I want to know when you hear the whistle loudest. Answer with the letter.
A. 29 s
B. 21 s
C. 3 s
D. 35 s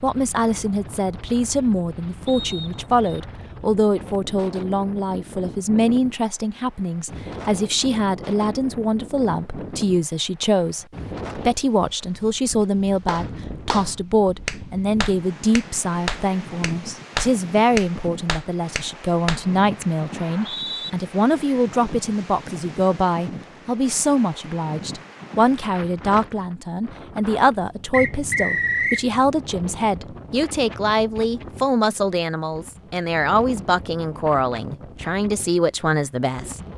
A.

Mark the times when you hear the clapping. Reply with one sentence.
The clapping can be heard from 13.1 to 19.9 s.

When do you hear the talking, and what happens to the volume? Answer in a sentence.
The talking can be heard from 0.0 to 36.6 s, at a steady volume.